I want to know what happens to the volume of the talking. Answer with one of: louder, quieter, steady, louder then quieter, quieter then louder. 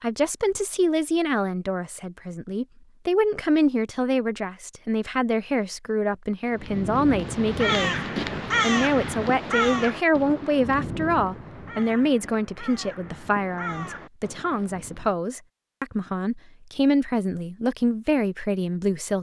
steady.